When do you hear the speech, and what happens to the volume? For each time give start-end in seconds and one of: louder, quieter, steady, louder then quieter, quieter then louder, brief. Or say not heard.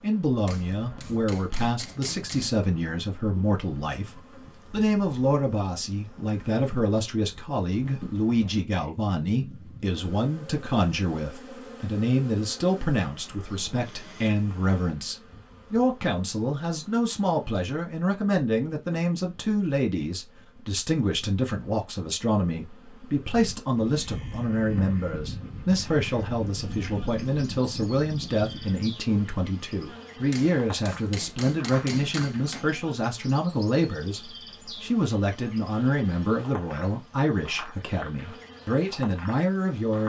0.0-40.0 steady.